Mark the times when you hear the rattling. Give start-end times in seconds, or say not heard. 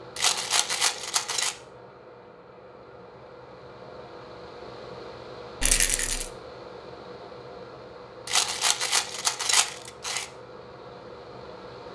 0.1-1.6, 5.6-6.3, 8.2-10.2.